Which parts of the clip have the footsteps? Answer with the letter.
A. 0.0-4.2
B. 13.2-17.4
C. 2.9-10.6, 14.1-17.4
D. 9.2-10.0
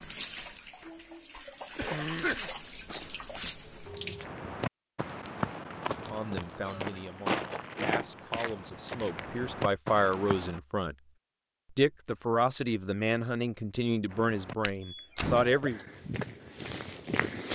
C.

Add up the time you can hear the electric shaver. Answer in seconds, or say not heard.
not heard.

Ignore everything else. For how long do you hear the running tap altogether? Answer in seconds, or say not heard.
4 s.